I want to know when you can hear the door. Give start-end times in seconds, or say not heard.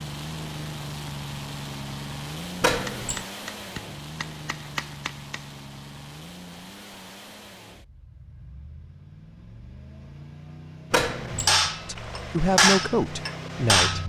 2.6-3.2, 10.9-11.6.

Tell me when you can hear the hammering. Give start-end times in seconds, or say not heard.
2.8-5.5, 11.0-14.0.